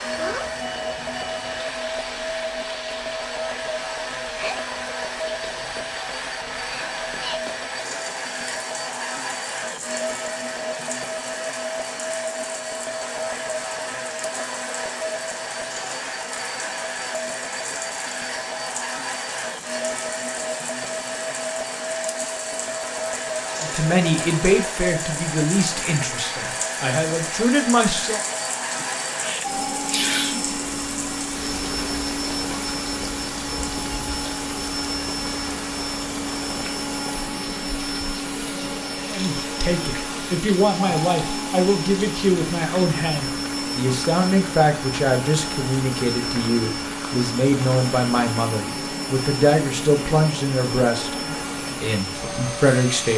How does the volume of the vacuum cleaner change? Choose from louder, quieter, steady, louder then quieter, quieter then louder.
steady.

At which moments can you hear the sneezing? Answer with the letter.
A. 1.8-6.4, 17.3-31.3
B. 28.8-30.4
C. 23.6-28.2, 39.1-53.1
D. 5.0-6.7
B.